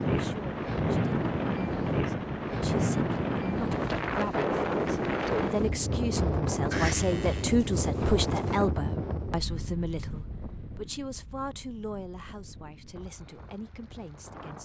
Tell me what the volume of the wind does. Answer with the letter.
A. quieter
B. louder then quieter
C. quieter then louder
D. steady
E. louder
A.